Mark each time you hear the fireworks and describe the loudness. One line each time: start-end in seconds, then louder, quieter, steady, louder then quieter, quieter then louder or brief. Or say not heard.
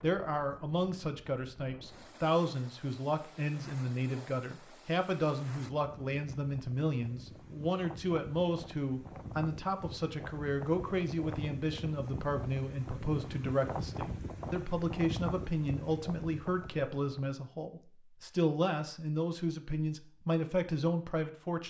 not heard.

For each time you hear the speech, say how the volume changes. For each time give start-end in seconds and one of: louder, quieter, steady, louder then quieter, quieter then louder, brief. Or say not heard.
0.0-21.6 steady.